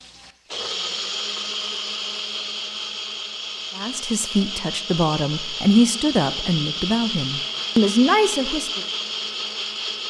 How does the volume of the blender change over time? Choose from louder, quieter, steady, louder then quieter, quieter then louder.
steady.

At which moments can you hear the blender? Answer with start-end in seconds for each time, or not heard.
0.0-10.0.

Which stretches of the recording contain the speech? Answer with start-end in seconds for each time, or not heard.
3.8-8.8.